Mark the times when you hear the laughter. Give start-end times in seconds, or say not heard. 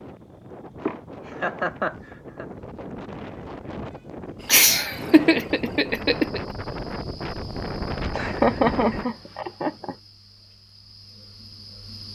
0.8-2.5, 4.5-6.4, 8.2-9.9.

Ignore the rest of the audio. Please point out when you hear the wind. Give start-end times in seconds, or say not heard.
0.0-9.1.